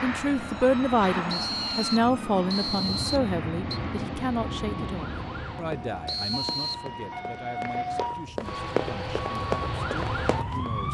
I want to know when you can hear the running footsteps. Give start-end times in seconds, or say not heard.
5.7-10.7.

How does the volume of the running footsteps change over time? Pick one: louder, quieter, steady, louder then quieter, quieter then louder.
louder.